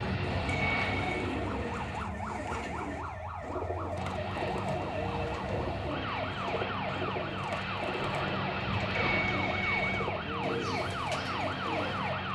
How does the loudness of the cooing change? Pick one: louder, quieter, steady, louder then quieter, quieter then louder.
steady.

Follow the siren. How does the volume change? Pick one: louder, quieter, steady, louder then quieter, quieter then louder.
steady.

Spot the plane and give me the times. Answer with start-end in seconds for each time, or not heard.
0.0-2.0, 4.0-12.3.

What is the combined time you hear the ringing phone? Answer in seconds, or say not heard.
2 s.